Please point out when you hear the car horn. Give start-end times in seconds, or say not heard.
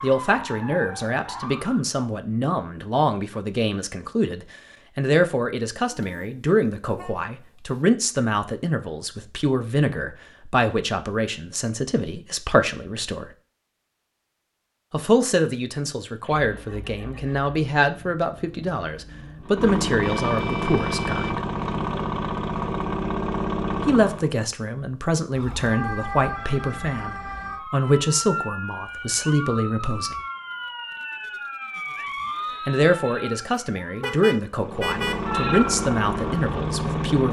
5.9-7.8, 20.0-21.4, 34.0-35.2.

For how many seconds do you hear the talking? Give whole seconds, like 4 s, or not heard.
31 s.